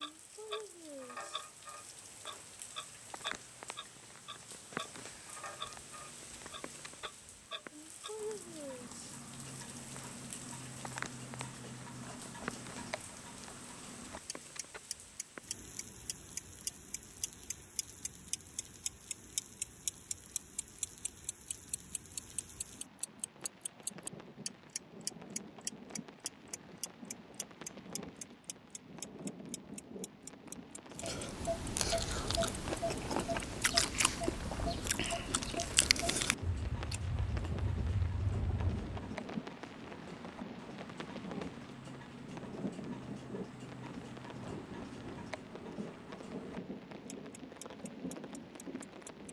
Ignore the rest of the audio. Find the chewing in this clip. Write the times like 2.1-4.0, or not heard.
30.9-38.9.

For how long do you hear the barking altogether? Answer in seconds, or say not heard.
not heard.